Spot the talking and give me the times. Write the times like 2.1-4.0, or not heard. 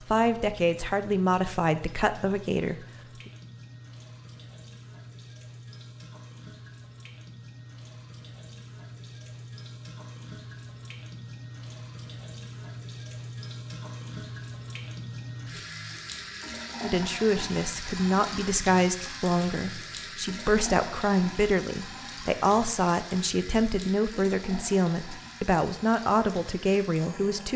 0.0-3.3, 16.8-27.5.